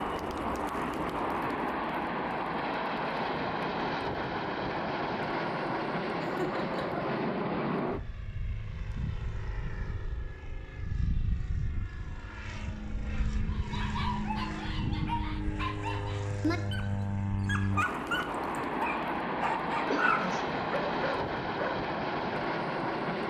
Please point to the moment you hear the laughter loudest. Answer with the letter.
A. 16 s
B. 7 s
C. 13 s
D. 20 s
D.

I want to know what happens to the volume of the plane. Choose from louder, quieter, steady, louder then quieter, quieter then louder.
quieter then louder.